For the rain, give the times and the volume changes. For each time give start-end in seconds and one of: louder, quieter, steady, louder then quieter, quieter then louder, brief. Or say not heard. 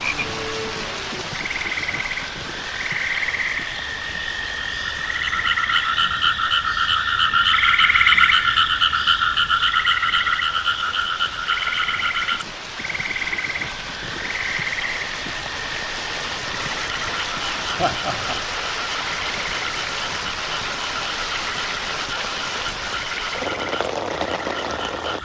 0.0-25.2 quieter then louder.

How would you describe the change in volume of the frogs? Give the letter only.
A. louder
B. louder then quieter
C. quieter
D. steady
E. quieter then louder
B.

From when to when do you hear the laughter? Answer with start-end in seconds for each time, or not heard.
17.8-18.4.